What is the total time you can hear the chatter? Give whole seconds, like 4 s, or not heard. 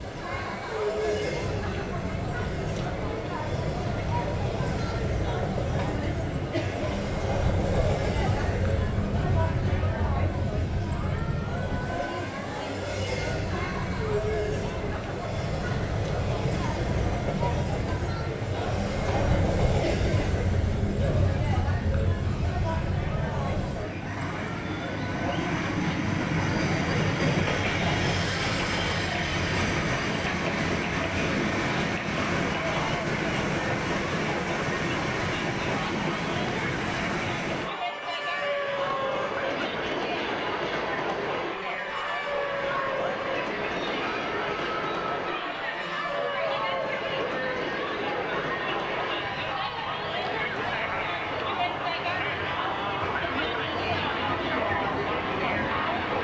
56 s.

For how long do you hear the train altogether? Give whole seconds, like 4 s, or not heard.
56 s.